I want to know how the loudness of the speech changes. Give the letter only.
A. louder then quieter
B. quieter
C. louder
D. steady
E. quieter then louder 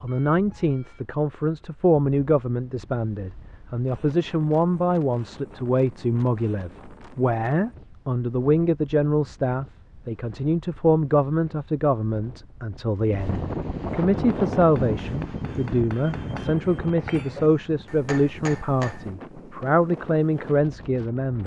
D.